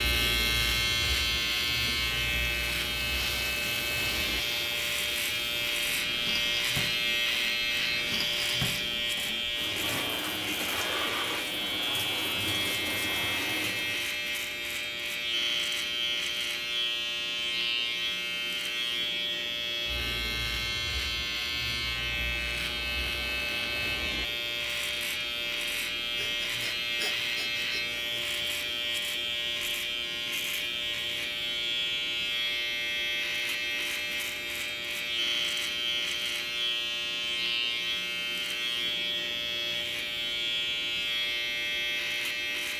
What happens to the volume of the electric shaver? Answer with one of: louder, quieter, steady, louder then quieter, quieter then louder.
steady.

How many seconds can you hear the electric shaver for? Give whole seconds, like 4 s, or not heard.
43 s.